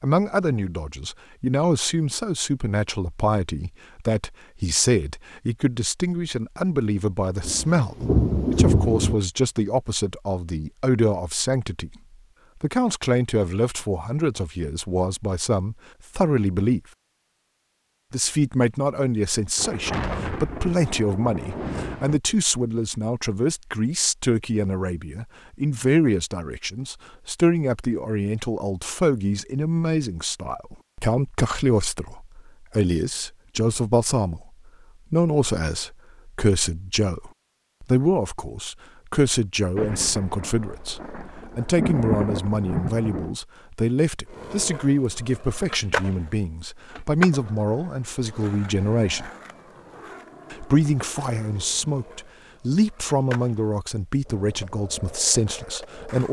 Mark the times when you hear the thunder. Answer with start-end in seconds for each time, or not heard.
7.4-9.2, 19.6-22.2, 39.8-43.4.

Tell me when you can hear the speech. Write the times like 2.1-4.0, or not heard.
0.0-11.9, 12.6-16.8, 18.1-49.3, 50.5-56.2.